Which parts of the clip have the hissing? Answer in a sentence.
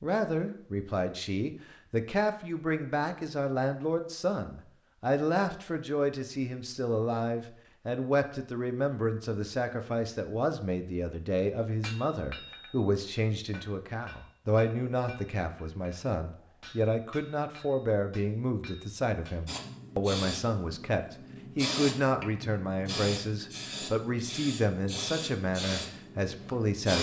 The hissing can be heard from 19.4 to 26.9 s.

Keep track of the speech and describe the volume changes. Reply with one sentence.
The loudness of the speech stays about the same.